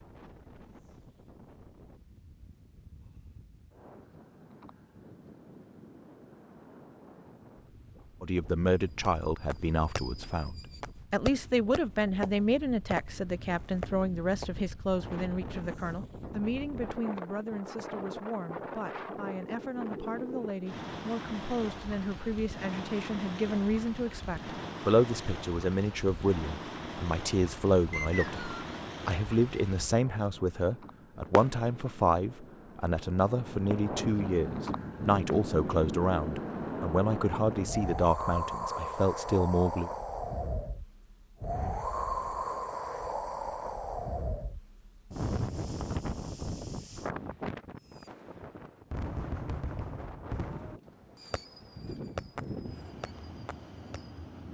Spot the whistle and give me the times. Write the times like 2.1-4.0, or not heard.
27.9-28.8.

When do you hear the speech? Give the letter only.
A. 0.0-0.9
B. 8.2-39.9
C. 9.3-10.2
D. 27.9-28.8
B.